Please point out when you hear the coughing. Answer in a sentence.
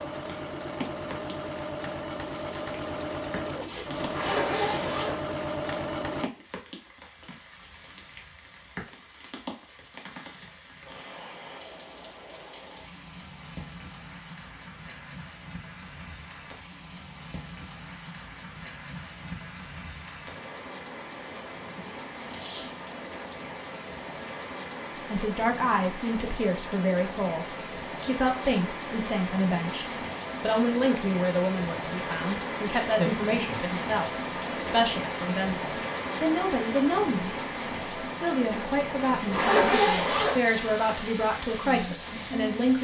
You can't hear the coughing here.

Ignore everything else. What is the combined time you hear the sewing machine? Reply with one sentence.
The sewing machine can be heard for 6 seconds in total.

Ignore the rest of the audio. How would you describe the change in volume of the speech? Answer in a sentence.
The volume of the speech stays about the same.